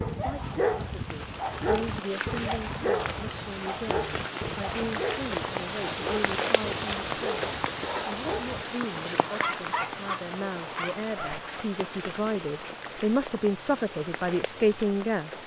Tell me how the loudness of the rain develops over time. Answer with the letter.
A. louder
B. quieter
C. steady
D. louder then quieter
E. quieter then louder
D.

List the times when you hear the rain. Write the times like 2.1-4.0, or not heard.
0.0-15.4.